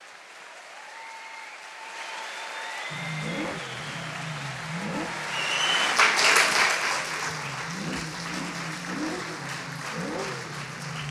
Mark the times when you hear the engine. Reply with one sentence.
The engine can be heard from 2.9 to 11.0 s.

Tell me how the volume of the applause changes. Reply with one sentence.
The volume of the applause goes up, then down.